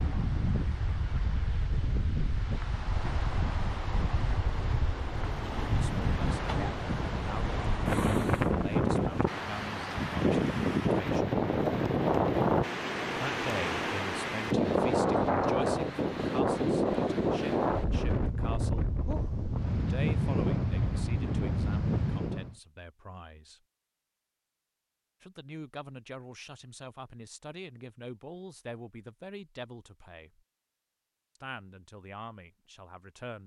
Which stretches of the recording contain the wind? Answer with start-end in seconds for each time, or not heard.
0.0-22.6.